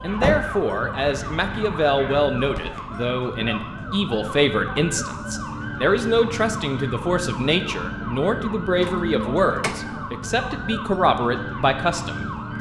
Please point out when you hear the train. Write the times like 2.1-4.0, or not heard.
not heard.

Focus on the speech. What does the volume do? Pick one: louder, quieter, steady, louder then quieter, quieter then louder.
steady.